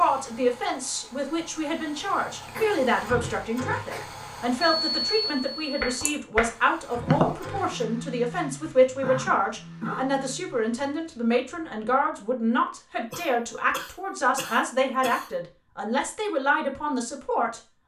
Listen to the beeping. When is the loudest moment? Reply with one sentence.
The loudest moment of the beeping is at 5 seconds.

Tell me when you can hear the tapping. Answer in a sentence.
The tapping can be heard from 5.2 to 7.3 s.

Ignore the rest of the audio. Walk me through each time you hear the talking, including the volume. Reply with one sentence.
The talking can be heard from 0.0 to 17.6 s, at a steady volume.